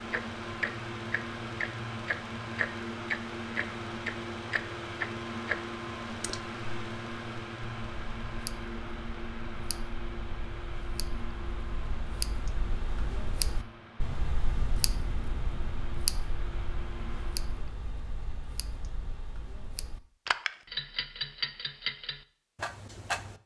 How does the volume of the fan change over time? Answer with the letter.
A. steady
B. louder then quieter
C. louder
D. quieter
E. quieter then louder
D.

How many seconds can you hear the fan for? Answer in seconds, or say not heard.
18 s.